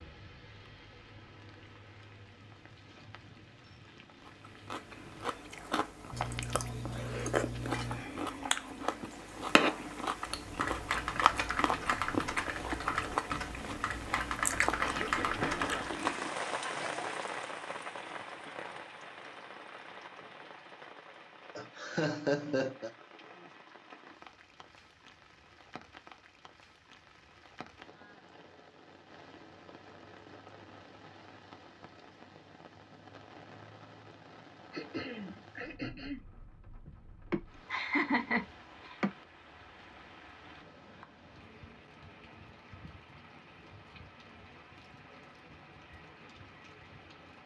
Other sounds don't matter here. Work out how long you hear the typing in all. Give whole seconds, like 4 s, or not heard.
6 s.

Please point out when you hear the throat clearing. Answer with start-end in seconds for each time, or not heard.
14.8-16.4, 34.7-36.2.